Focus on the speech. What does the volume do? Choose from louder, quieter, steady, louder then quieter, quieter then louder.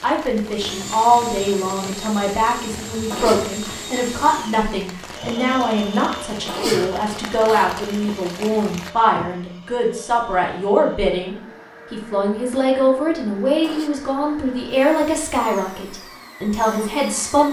steady.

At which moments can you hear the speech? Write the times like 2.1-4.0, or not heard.
0.0-17.4.